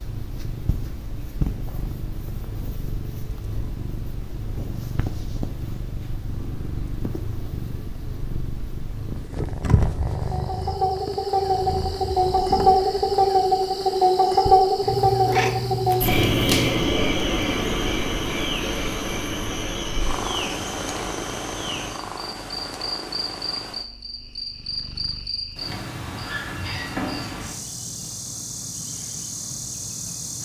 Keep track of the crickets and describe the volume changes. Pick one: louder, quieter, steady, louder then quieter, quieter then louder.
quieter.